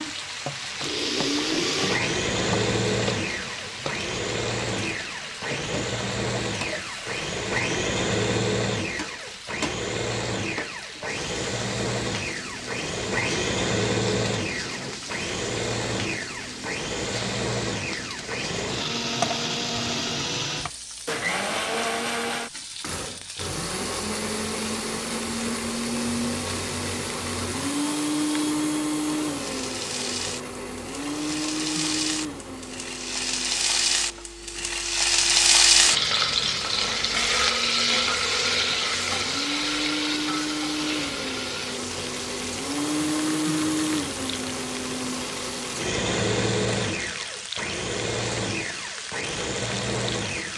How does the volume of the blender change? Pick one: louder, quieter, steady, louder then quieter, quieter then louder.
quieter then louder.